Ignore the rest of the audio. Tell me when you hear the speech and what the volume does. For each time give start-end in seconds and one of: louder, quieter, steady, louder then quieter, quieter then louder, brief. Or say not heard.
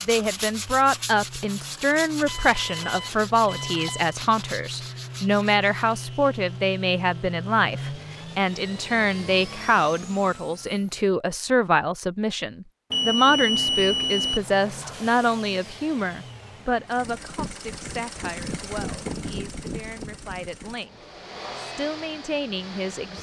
0.1-23.1 quieter.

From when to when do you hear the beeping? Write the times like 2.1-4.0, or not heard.
2.2-4.2, 12.9-14.4.